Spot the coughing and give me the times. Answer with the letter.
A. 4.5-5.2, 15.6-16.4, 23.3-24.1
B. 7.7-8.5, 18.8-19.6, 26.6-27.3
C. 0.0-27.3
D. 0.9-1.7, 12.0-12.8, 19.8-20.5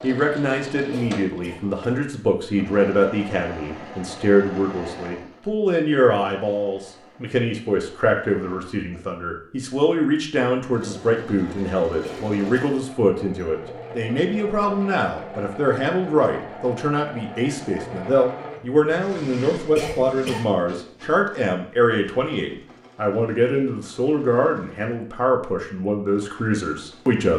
D.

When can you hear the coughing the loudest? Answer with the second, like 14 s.
20 s.